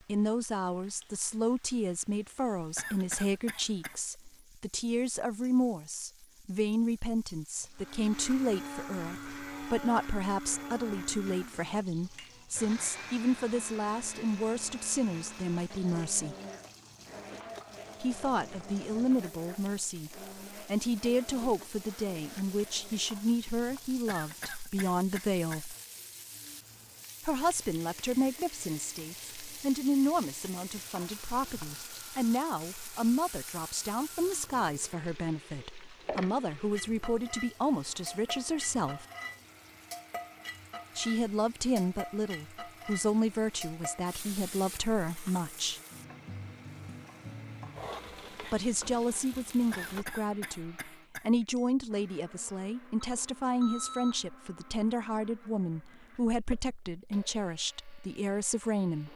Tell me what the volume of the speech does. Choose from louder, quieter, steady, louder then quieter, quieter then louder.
steady.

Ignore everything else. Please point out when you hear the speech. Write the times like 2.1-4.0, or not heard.
0.1-16.4, 18.0-25.8, 27.2-39.0, 41.0-45.8, 48.4-59.1.